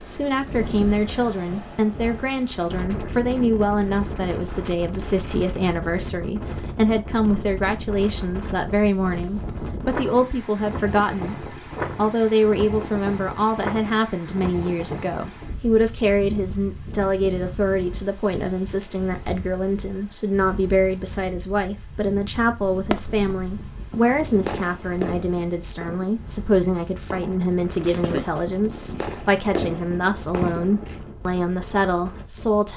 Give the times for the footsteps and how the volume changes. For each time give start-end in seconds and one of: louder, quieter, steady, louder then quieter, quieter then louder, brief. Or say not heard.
not heard.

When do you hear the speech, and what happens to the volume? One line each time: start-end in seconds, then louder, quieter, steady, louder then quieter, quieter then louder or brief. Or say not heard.
0.1-32.7 steady.